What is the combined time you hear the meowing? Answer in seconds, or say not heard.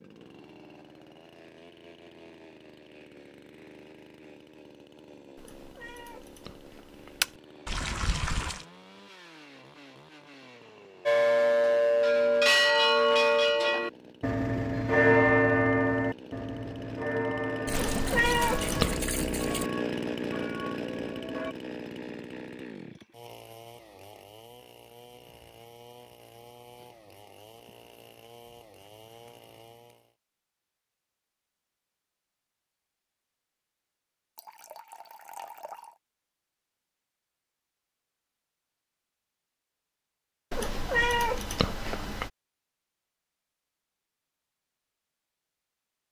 4 s.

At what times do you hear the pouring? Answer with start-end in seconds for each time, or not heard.
7.7-8.7, 17.6-19.7, 34.4-36.0.